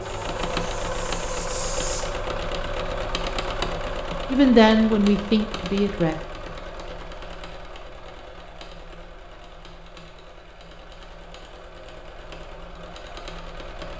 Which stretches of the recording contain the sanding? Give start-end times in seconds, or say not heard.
0.0-2.0.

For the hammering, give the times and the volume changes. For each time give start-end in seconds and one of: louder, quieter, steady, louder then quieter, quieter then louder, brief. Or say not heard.
not heard.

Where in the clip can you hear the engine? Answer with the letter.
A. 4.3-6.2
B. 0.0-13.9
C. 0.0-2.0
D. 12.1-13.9
B.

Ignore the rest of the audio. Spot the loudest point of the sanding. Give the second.
2 s.